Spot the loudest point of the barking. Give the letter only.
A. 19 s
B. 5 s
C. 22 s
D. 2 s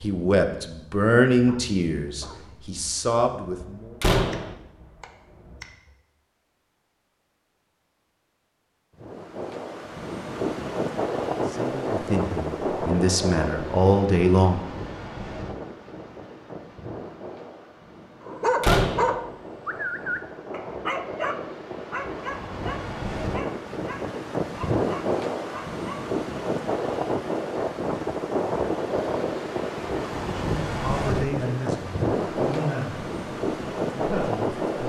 A.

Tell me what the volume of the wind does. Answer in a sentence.
The volume of the wind goes down, then up.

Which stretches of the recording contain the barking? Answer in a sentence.
You can hear the barking from 0.0 to 6.0 s and from 18.2 to 26.1 s.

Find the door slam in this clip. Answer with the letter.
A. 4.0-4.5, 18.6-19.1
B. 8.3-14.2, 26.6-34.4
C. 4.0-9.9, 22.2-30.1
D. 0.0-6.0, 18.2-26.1
A.